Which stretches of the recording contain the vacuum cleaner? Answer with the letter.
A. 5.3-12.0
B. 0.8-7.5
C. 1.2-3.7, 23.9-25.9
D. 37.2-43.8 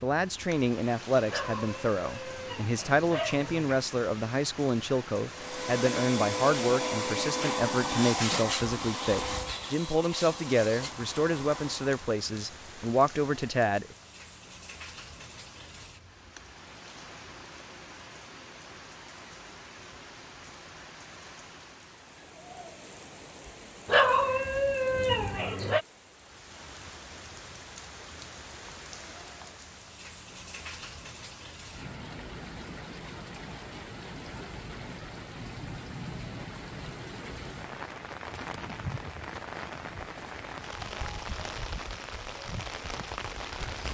A.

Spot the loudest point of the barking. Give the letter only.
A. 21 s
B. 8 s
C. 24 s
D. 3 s
C.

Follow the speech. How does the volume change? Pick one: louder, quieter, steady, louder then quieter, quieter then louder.
steady.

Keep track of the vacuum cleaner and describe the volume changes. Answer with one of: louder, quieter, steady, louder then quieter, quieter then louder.
quieter.